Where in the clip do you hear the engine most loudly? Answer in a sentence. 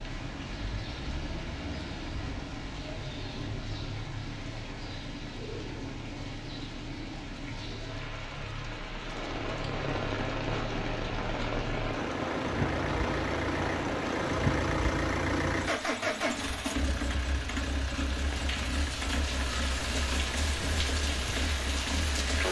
The loudest moment of the engine is at 15 seconds.